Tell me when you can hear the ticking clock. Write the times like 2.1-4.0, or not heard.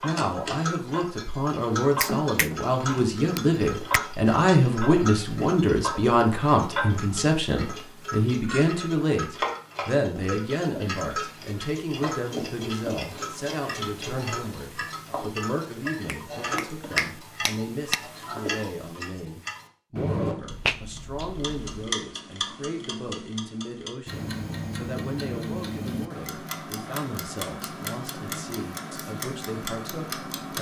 0.0-30.5.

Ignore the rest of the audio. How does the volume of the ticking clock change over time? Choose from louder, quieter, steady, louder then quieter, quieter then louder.
steady.